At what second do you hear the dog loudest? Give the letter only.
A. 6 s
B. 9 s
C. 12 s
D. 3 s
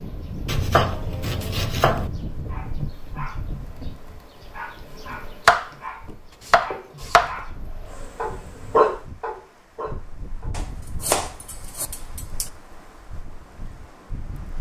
B.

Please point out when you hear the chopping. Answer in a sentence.
You can hear the chopping from 0.5 to 2.1 s, from 5.5 to 7.4 s and from 10.6 to 12.4 s.